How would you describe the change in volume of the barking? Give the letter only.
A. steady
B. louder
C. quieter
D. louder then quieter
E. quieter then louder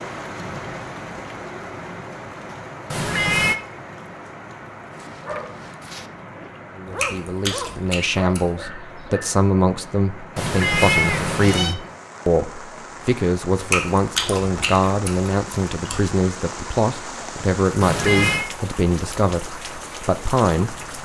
E.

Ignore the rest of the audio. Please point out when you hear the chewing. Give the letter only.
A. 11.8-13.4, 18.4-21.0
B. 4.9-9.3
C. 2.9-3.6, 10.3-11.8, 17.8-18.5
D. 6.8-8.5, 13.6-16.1
D.